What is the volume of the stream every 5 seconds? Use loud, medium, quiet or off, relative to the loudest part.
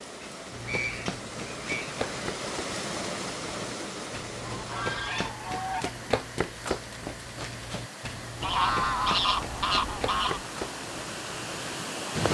loud, medium, loud.